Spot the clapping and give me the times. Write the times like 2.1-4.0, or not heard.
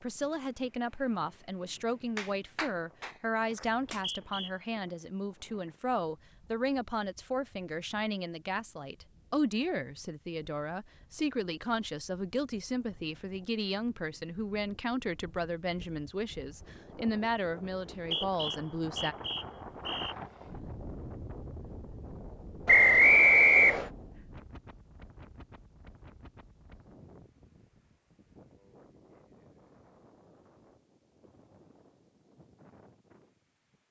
2.1-4.0.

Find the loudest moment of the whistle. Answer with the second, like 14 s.
23 s.